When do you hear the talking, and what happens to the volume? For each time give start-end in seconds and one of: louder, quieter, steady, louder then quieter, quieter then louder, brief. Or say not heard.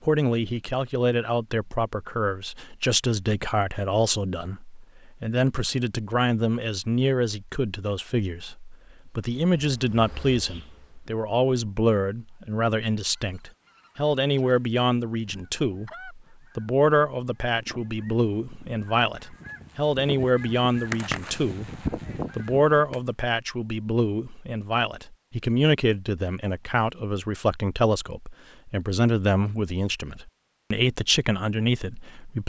0.0-32.4 steady.